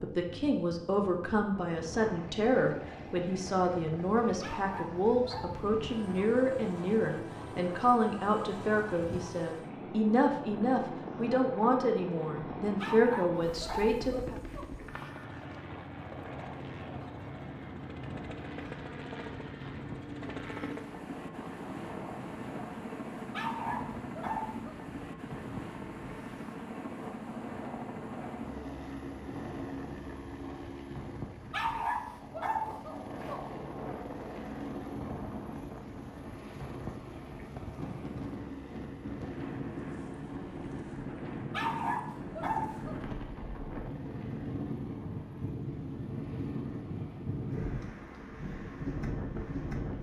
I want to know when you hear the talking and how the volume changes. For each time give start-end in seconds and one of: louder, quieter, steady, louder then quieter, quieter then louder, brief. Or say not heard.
0.0-14.3 steady.